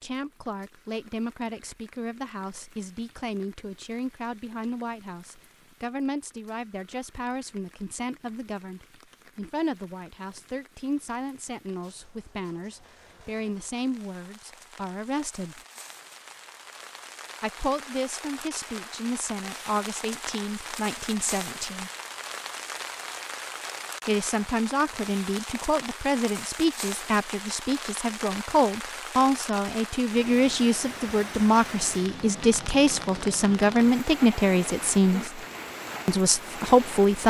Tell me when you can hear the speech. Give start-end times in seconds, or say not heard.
0.0-15.6, 17.4-21.9, 24.1-35.4, 36.0-37.2.